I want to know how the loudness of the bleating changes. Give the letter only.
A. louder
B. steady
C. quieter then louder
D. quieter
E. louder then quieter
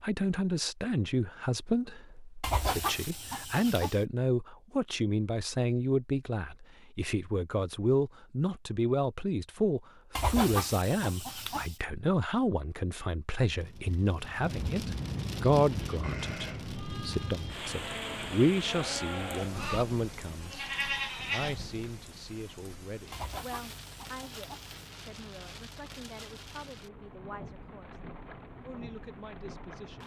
A.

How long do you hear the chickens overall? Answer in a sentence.
You can hear the chickens for 5 seconds altogether.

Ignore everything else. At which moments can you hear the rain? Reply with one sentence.
You can hear the rain from 13.4 to 30.0 s.